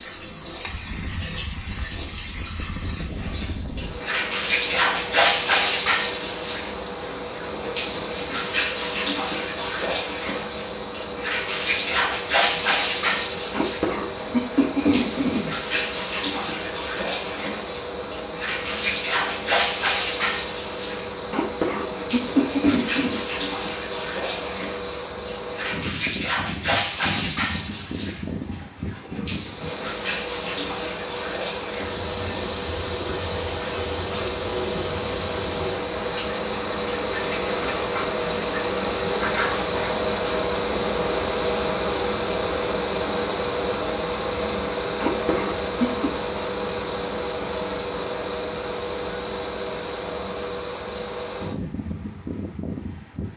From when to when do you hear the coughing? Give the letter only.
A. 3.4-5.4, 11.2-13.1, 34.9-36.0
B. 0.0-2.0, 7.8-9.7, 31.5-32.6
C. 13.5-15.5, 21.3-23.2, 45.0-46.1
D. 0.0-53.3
C.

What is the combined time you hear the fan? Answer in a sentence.
You can hear the fan for 53 seconds altogether.